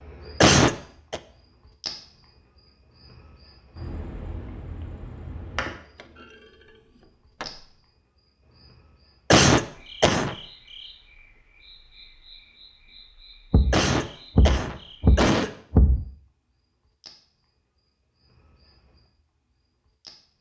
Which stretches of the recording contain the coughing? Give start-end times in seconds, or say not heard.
0.4-1.2, 9.3-10.3, 13.7-15.5.